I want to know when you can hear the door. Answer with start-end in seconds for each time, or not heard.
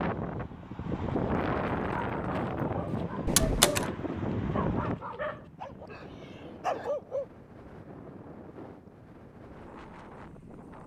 3.2-3.9.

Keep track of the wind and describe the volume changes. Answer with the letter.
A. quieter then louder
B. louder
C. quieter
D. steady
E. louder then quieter
C.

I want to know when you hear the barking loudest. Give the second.
7 s.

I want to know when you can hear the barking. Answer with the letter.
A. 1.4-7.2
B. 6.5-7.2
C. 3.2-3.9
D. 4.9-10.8
A.